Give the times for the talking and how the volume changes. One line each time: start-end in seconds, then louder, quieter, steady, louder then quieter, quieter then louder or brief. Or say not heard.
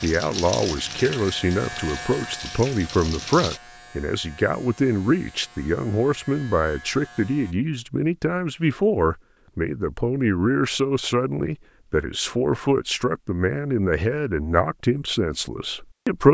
0.0-16.3 steady.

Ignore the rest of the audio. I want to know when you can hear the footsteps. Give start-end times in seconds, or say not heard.
not heard.